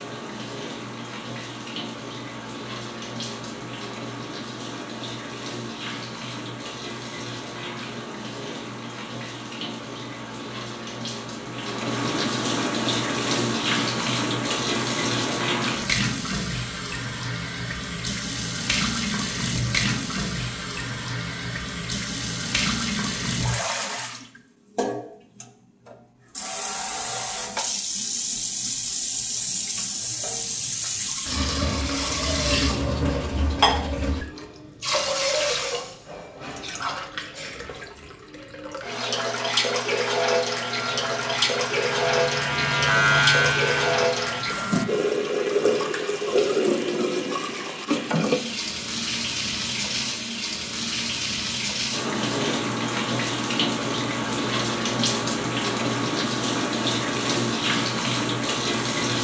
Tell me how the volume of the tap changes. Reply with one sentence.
The loudness of the tap goes up.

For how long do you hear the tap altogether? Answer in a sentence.
You can hear the tap for 59 seconds altogether.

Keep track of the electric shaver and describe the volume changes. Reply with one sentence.
The loudness of the electric shaver goes up, then down.